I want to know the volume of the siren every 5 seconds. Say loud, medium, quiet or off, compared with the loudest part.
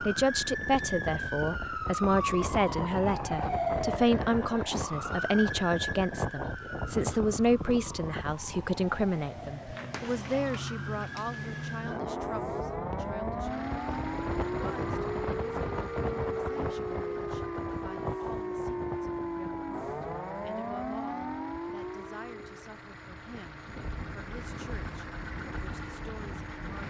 loud, medium, loud, loud, loud, off.